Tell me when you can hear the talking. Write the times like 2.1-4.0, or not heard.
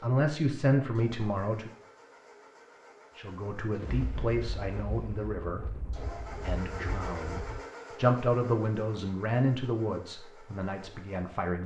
0.0-1.7, 3.1-11.6.